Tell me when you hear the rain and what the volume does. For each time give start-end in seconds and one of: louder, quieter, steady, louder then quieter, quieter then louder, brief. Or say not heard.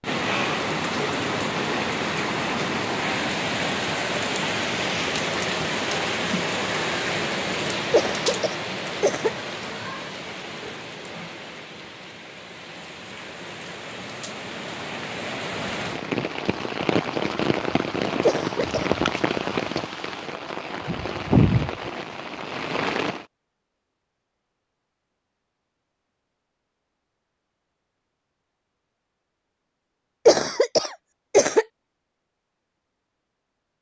0.0-23.2 quieter then louder.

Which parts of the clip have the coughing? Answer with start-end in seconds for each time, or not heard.
7.9-9.3, 18.2-18.9, 30.2-31.6.